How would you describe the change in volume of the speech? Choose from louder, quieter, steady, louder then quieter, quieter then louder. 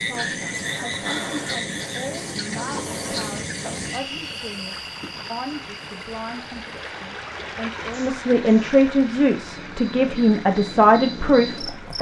louder.